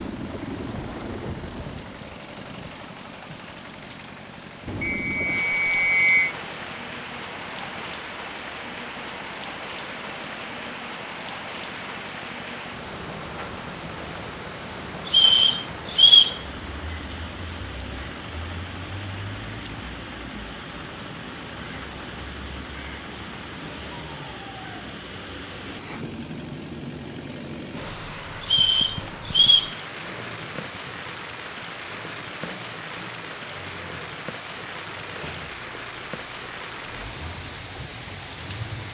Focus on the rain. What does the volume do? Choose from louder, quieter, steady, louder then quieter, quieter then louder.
steady.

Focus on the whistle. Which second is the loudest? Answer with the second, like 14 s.
16 s.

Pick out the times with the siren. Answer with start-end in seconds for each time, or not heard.
not heard.